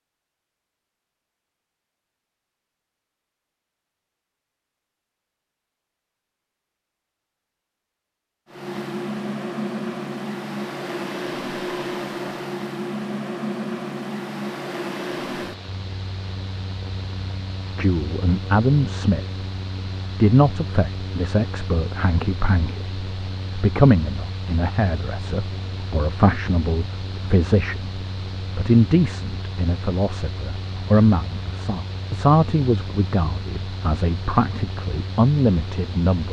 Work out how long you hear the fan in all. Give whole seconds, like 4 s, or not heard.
28 s.